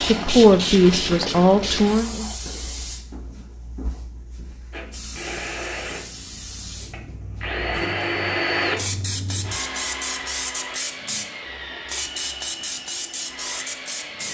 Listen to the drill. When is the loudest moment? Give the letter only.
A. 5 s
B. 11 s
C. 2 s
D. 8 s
D.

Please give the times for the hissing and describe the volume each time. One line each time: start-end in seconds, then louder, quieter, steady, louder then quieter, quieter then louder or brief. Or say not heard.
0.0-14.2 quieter then louder.